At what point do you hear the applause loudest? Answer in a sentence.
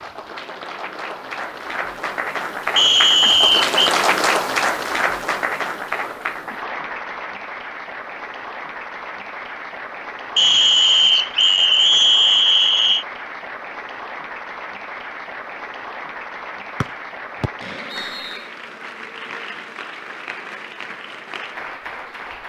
The loudest moment of the applause is at 4 seconds.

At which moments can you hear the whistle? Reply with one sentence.
The whistle can be heard from 2.8 to 3.8 s, from 10.3 to 13.1 s and from 16.8 to 18.4 s.